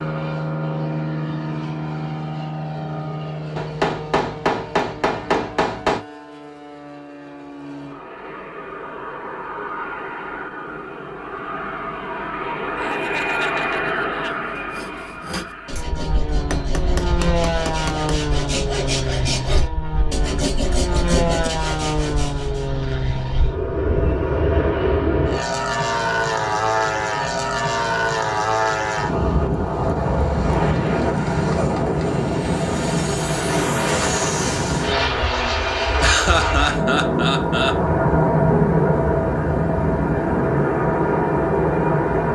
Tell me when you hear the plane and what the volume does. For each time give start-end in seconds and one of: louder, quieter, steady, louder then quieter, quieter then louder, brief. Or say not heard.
0.0-42.3 louder.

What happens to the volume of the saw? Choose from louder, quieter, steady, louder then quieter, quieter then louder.
louder.